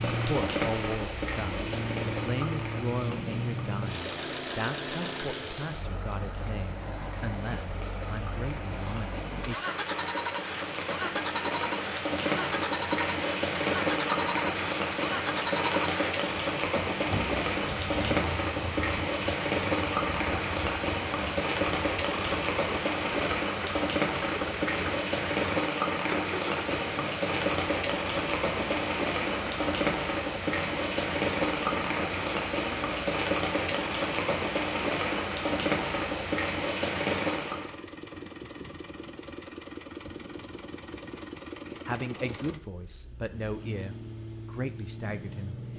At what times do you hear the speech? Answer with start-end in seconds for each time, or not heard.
0.1-9.6, 41.9-45.5.